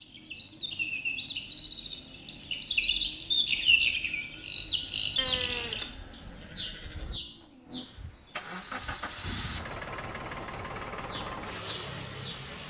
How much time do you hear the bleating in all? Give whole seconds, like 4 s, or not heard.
2 s.